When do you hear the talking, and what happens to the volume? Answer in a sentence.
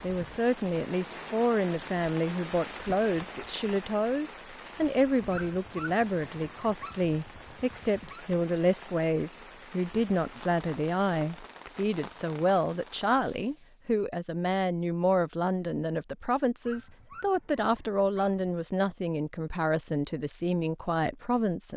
The talking can be heard from 0.0 to 21.7 s, at a steady volume.